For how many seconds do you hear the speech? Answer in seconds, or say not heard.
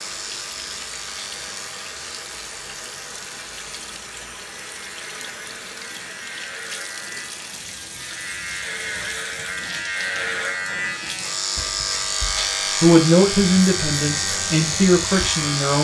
3 s.